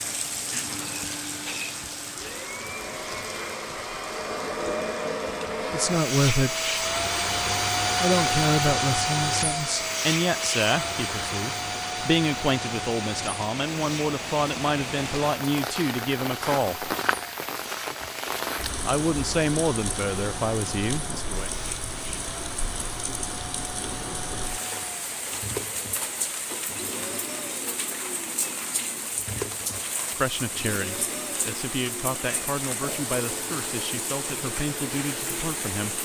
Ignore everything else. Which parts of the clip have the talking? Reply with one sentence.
You can hear the talking from 5.7 to 6.7 s, from 8.0 to 16.9 s, from 18.9 to 21.5 s and from 30.1 to 36.0 s.